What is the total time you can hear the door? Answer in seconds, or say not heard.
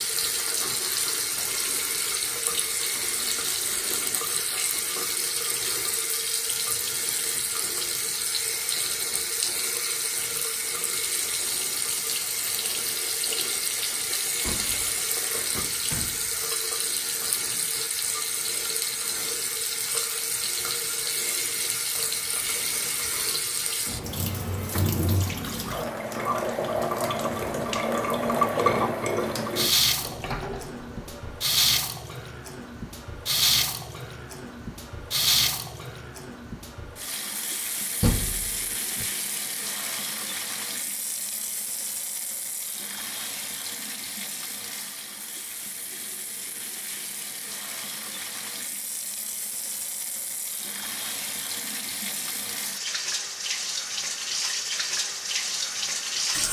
5 s.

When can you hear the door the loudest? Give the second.
38 s.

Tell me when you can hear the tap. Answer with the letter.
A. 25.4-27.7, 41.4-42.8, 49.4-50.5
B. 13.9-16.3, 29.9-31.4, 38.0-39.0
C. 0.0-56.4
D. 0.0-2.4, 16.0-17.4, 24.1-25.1
C.